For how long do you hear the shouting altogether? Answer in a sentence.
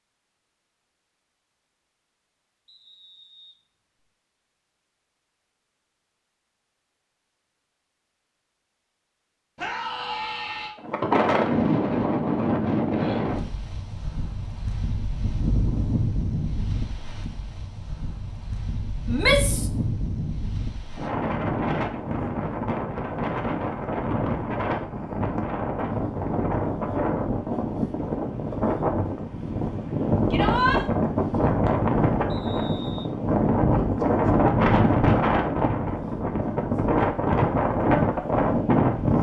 The shouting can be heard for 2 seconds in total.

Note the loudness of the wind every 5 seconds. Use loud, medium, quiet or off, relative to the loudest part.
off, off, loud, medium, medium, medium, loud, loud.